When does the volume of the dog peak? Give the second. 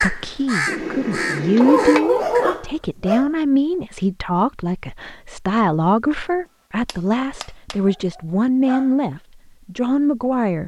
2 s.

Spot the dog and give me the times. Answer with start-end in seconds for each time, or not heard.
1.6-3.3, 7.8-8.9.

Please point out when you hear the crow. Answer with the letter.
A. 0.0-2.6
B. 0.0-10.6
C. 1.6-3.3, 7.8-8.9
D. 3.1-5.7
A.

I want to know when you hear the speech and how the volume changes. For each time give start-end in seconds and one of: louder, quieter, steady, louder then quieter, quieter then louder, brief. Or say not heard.
0.0-10.6 steady.